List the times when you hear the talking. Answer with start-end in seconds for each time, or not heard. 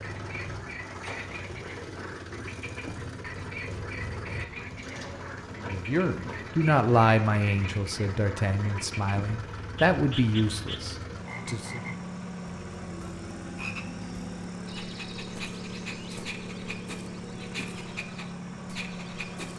5.5-11.8.